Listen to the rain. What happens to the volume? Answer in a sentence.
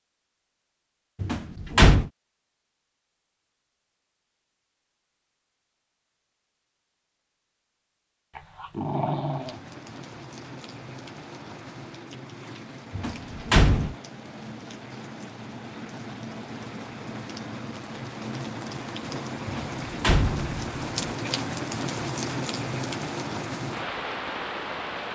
The loudness of the rain goes up.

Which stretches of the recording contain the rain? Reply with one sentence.
The rain can be heard from 9.2 to 25.1 s.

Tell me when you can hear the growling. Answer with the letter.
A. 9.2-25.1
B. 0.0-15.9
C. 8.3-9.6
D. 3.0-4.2
C.